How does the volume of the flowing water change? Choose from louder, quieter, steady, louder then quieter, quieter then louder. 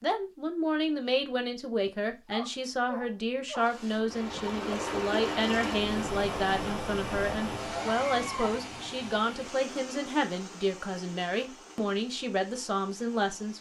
quieter.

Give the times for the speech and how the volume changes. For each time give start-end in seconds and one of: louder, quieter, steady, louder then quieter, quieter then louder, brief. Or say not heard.
0.0-13.5 steady.